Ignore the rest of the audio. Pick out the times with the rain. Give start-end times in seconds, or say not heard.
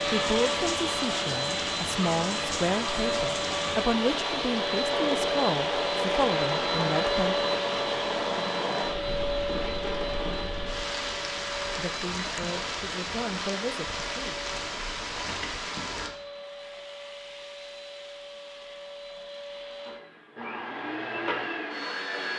0.0-16.1.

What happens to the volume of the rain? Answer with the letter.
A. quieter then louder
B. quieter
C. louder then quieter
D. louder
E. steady
E.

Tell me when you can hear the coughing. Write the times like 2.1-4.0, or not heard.
not heard.